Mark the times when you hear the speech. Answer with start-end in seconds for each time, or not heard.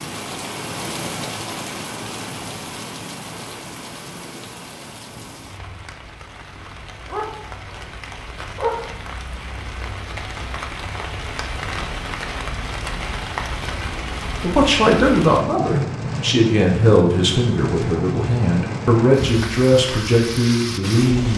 14.4-21.3.